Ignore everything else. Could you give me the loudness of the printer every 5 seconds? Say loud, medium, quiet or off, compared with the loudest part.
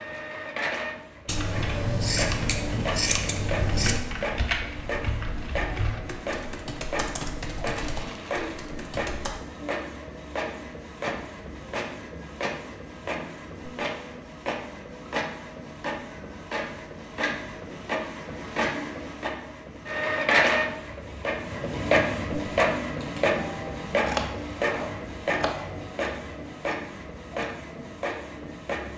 medium, medium, medium, medium, loud, medium.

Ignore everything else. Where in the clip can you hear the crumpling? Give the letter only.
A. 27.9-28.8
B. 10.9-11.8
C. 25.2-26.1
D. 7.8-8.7
D.